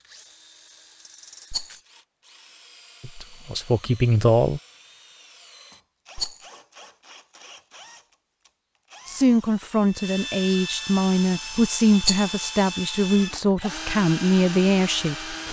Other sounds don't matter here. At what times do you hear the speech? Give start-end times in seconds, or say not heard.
3.0-4.6, 9.1-15.4.